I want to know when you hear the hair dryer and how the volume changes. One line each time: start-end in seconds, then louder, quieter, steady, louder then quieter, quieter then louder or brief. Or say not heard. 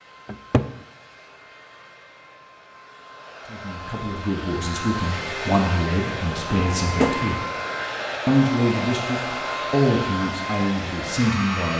0.0-11.7 louder.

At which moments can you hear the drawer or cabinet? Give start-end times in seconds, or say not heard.
0.2-0.7, 6.5-7.3.